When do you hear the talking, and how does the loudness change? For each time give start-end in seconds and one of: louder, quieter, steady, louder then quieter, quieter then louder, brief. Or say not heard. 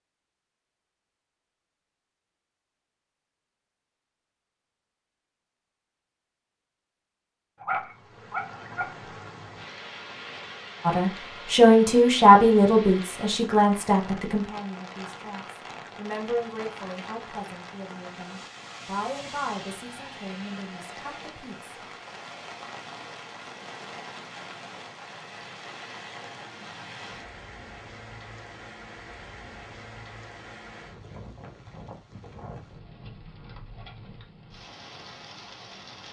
10.8-21.8 quieter.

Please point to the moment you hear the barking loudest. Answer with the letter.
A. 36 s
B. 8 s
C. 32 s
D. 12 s
B.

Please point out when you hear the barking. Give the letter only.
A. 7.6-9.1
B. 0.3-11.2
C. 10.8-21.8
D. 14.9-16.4
A.